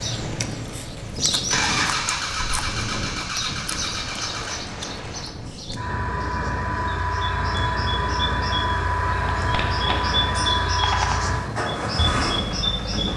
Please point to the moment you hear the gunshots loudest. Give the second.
11 s.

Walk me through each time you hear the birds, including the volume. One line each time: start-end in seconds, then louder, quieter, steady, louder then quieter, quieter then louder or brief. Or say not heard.
0.0-13.1 quieter then louder.